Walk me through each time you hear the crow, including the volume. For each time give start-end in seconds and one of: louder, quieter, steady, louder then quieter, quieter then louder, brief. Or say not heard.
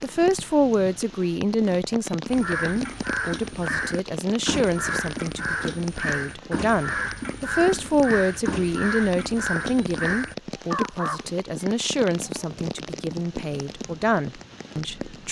2.2-11.2 steady.